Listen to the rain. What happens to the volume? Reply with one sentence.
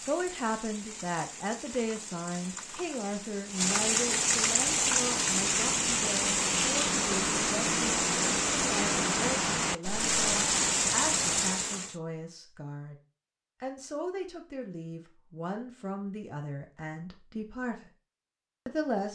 The volume of the rain goes up.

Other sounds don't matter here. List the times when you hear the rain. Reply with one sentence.
You can hear the rain from 0.0 to 11.9 s.